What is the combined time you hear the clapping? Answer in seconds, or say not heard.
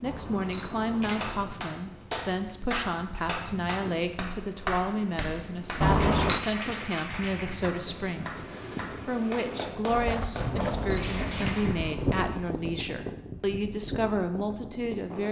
11 s.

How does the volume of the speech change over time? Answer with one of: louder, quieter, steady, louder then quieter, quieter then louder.
steady.